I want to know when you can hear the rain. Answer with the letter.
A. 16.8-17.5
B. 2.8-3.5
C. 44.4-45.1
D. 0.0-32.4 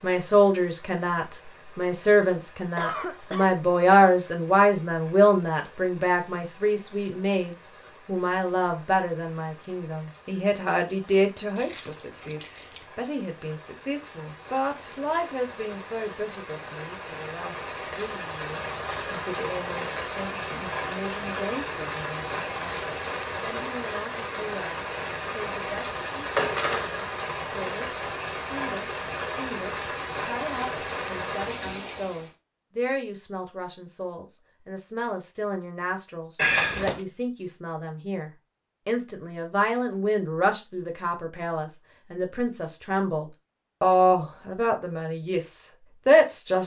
D.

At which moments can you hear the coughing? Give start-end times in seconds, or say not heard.
2.8-3.5.